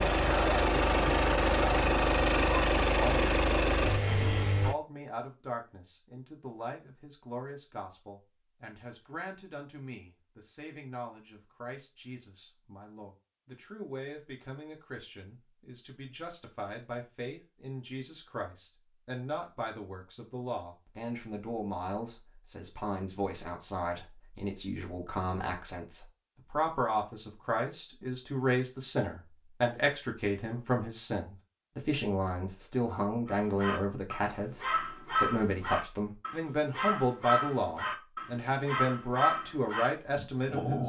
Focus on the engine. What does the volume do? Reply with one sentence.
The volume of the engine stays about the same.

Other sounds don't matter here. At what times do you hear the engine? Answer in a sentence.
You can hear the engine from 0.0 to 4.8 s.